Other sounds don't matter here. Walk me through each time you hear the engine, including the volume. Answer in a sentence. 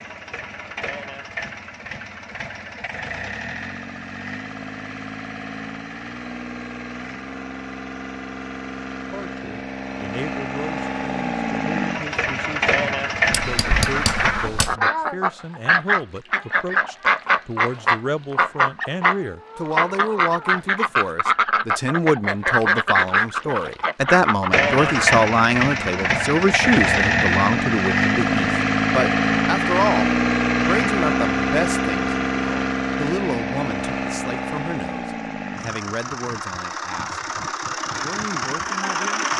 The engine can be heard from 0.0 to 14.3 s, getting louder; and from 24.5 to 39.3 s, getting quieter.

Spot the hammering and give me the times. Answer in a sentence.
The hammering can be heard from 13.3 to 14.8 s.